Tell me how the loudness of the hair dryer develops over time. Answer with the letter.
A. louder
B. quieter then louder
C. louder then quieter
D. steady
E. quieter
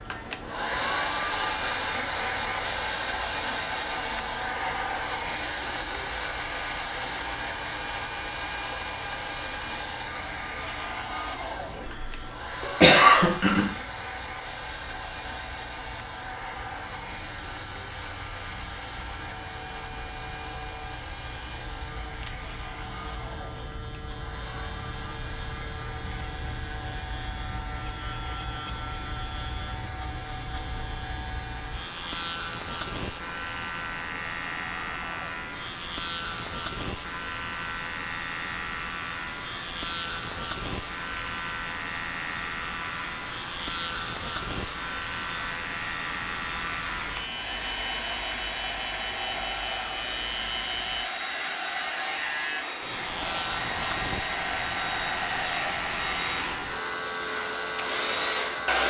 B.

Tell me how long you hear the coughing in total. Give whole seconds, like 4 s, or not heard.
2 s.